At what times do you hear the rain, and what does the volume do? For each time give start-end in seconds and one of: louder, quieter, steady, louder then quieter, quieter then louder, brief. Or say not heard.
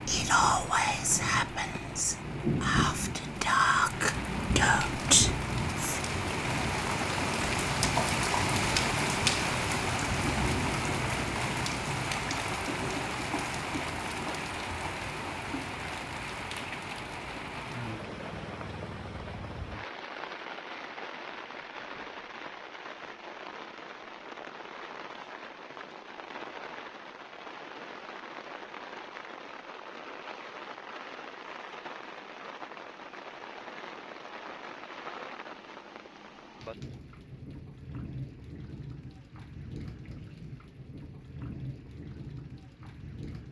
0.0-43.4 quieter.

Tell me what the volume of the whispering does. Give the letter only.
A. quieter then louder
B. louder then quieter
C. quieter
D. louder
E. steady
A.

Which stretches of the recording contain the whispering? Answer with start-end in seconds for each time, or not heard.
0.1-6.0.